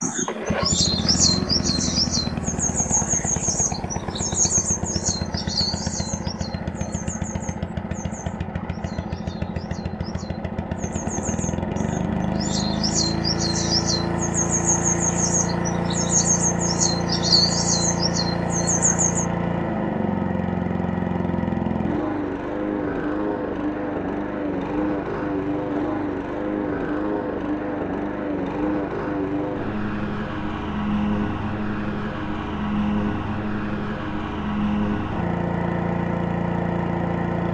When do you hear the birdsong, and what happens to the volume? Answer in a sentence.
You can hear the birdsong from 0.0 to 19.2 s, getting quieter then louder.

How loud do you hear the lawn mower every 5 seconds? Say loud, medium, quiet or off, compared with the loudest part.
loud, medium, loud, loud, loud, loud, loud, loud.